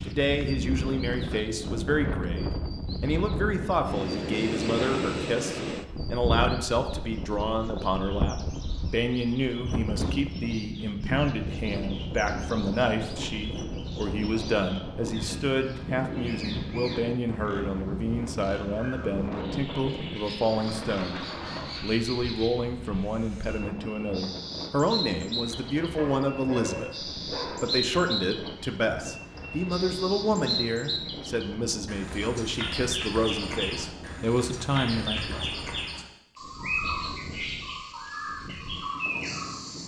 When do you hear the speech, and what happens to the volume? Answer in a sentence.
The speech can be heard from 0.0 to 35.4 s, at a steady volume.